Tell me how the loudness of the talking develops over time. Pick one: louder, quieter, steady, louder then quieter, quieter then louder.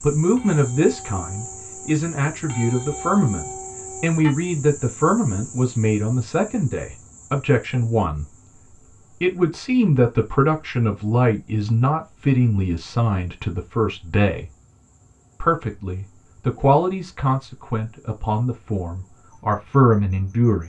steady.